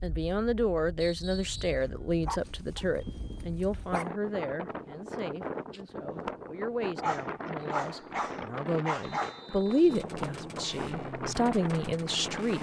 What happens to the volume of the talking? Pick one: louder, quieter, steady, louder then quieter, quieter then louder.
quieter then louder.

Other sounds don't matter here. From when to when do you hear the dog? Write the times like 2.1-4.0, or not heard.
1.6-4.1, 7.0-9.4.